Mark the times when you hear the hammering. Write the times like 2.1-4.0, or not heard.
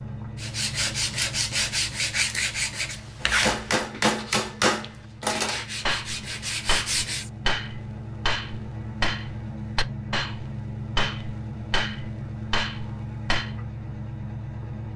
3.2-13.6.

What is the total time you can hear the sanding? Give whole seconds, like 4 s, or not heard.
7 s.